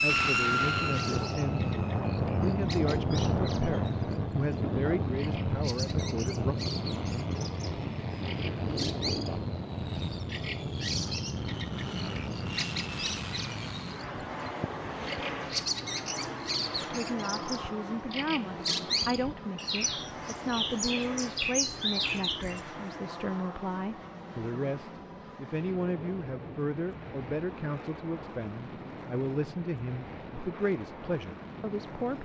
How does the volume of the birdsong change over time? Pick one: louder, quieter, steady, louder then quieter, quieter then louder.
louder.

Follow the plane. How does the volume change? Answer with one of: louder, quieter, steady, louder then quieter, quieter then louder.
quieter.